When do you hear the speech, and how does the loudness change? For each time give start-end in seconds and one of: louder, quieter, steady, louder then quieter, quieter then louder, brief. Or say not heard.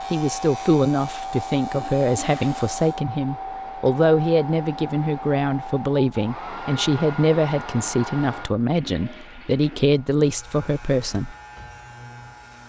0.1-11.3 steady.